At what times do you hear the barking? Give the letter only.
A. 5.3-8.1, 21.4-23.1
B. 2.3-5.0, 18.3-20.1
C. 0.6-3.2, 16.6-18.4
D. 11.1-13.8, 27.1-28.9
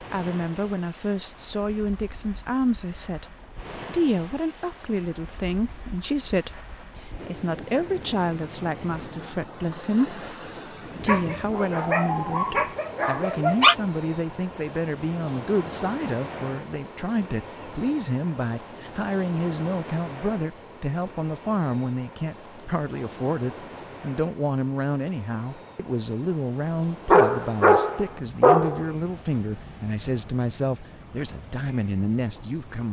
D.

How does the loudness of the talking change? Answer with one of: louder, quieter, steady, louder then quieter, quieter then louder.
steady.